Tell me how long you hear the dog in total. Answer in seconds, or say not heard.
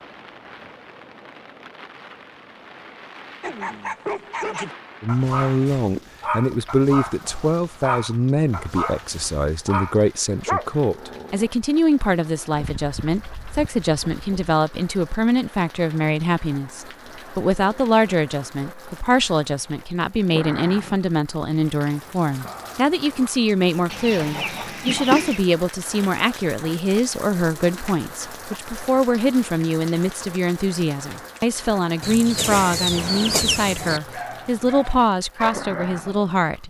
11 s.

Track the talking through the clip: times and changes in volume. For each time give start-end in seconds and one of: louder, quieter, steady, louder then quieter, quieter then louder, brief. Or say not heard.
5.0-36.6 steady.